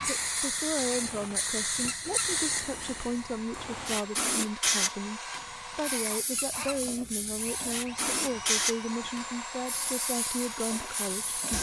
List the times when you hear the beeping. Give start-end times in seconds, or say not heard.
not heard.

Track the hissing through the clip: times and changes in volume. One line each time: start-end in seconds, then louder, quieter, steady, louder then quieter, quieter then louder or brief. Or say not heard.
0.0-11.5 quieter.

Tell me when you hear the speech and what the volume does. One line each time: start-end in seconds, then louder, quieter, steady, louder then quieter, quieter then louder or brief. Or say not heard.
0.0-11.5 steady.